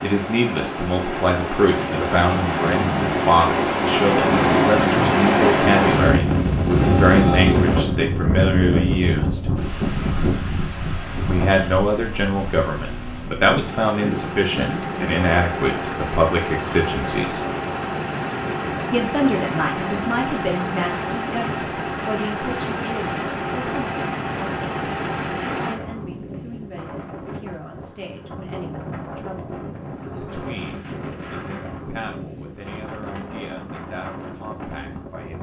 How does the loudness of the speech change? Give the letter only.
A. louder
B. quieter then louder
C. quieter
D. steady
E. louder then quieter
C.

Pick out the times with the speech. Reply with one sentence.
The speech can be heard from 0.0 to 9.5 s, from 11.2 to 17.4 s, from 18.9 to 24.6 s and from 25.6 to 35.3 s.